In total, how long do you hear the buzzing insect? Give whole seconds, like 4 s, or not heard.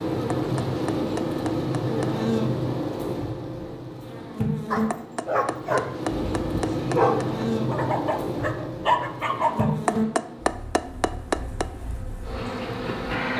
13 s.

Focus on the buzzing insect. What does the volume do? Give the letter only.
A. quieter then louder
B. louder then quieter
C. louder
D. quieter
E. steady
D.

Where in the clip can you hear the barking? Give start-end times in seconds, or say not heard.
4.7-9.8.